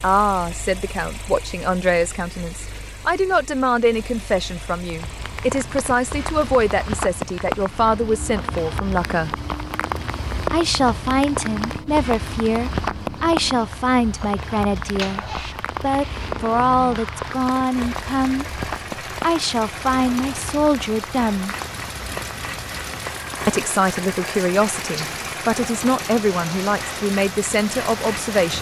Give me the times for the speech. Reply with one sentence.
You can hear the speech from 0.0 to 9.3 s, from 10.5 to 18.4 s, from 19.2 to 21.6 s and from 23.4 to 28.5 s.